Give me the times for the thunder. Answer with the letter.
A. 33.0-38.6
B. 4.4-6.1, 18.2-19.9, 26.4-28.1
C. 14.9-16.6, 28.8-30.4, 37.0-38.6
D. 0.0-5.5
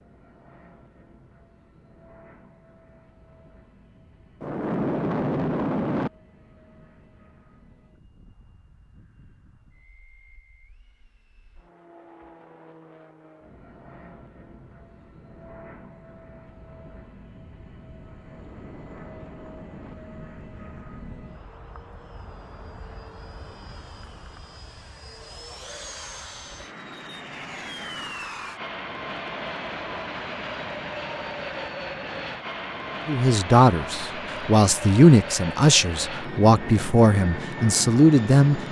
B.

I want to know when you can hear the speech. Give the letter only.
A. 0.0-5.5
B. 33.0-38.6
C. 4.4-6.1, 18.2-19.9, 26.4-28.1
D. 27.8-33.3
B.